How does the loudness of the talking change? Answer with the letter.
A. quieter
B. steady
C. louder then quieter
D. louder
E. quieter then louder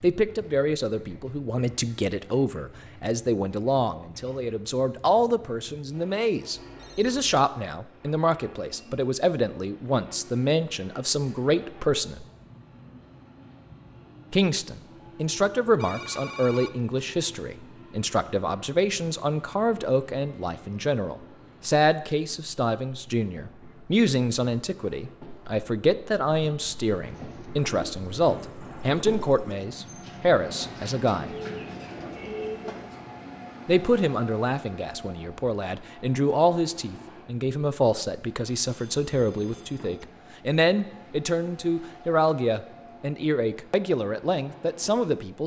B.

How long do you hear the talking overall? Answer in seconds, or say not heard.
41 s.